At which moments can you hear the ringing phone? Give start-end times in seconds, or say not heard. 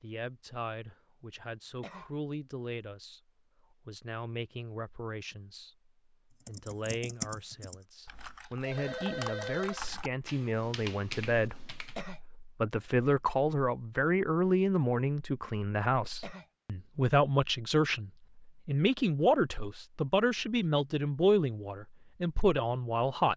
8.6-9.8.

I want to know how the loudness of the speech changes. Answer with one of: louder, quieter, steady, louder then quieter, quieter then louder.
louder.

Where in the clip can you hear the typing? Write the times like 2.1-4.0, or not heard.
6.4-12.0.